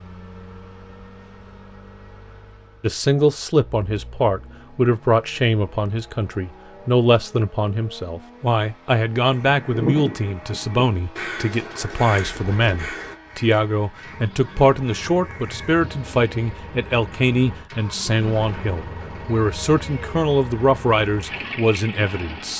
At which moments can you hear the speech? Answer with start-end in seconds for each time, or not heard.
2.8-22.5.